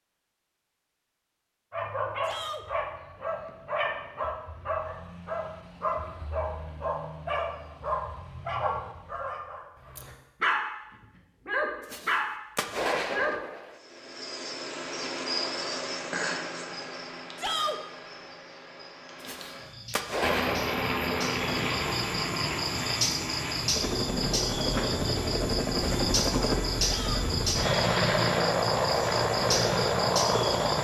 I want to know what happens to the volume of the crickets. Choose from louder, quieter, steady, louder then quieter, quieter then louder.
quieter then louder.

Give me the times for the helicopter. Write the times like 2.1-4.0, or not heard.
20.2-30.7.